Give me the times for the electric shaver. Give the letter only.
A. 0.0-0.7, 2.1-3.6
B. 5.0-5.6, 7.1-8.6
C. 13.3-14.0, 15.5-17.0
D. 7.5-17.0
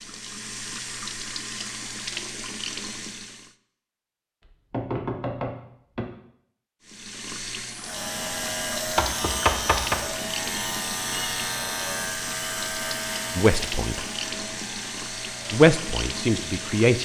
D.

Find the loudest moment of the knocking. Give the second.
10 s.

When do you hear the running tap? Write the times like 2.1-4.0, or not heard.
0.0-3.5, 6.8-17.0.